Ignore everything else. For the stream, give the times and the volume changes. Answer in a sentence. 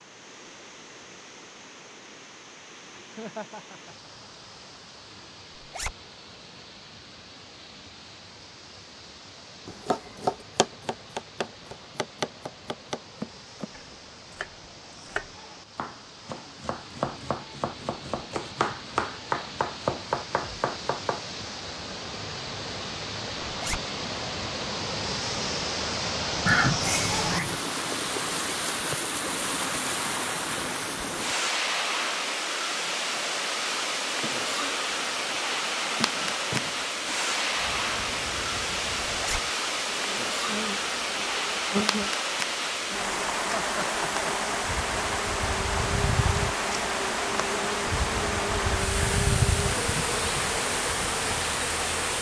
The stream can be heard from 0.0 to 52.1 s, getting louder.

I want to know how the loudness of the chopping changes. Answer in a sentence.
The volume of the chopping goes down, then up.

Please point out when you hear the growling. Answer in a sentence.
The growling can't be heard in this clip.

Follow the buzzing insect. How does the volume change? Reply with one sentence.
The volume of the buzzing insect goes up.